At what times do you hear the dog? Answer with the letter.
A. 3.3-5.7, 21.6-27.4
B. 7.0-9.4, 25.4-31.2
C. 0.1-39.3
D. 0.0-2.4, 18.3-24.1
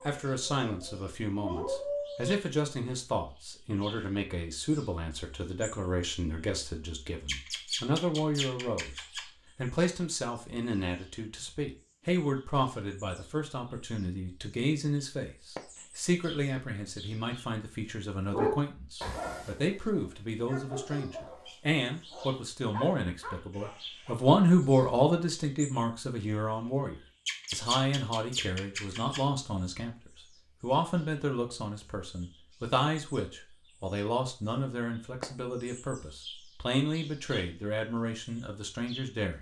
D.